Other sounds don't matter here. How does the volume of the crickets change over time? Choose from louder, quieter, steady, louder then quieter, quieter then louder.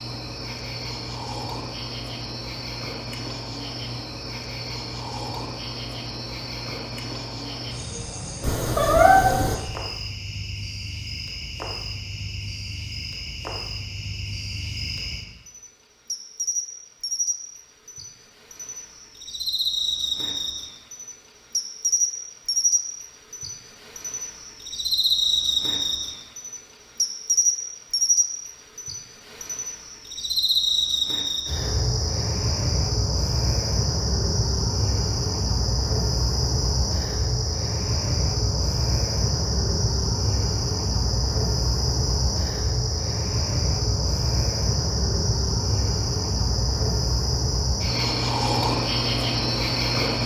louder.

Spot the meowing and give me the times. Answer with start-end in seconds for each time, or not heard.
8.4-9.6.